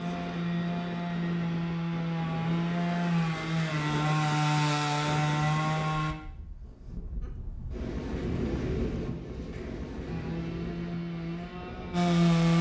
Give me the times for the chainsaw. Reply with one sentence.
You can hear the chainsaw from 0.0 to 6.2 s and from 10.0 to 12.5 s.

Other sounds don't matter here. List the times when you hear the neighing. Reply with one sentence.
You can't hear the neighing here.